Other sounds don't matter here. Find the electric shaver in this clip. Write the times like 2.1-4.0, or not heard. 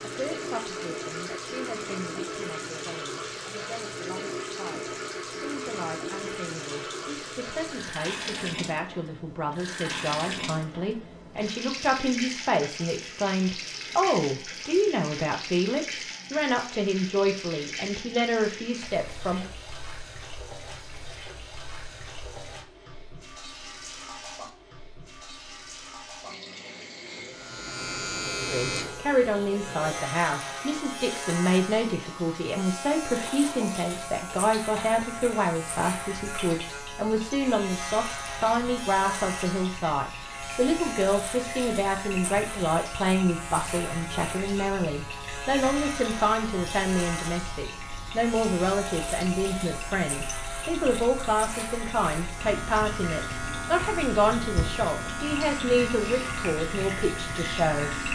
27.3-58.1.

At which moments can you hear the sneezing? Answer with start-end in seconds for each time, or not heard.
not heard.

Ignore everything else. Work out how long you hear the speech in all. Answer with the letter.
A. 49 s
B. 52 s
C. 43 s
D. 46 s
A.